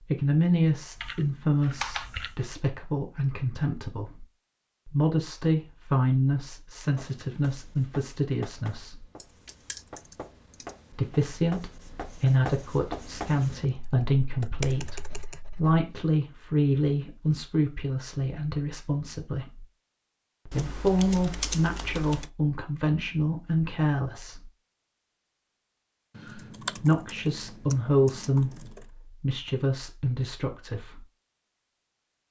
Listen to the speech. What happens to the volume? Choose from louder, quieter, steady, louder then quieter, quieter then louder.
steady.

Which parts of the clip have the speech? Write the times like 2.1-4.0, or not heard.
0.1-4.2, 4.8-9.1, 10.9-19.6, 20.4-24.5, 26.8-31.1.